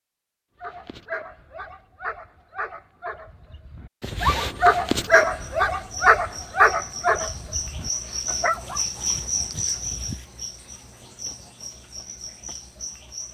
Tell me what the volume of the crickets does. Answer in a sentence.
The loudness of the crickets goes up, then down.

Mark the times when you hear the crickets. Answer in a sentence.
The crickets can be heard from 5.0 to 13.2 s.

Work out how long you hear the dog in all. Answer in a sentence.
The dog can be heard for 8 seconds in total.